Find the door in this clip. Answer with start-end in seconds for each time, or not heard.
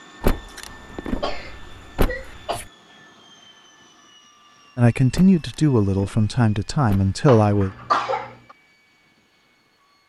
0.2-2.6, 5.1-7.1.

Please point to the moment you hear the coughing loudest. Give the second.
8 s.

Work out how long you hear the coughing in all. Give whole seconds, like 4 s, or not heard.
3 s.